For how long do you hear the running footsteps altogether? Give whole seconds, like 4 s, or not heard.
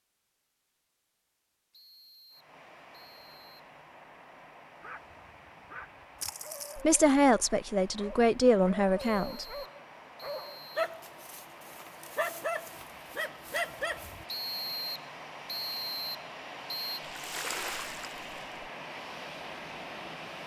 not heard.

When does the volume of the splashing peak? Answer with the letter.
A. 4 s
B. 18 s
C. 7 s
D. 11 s
B.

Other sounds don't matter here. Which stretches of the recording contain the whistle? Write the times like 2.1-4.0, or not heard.
1.7-3.6, 9.1-10.9, 14.2-17.0.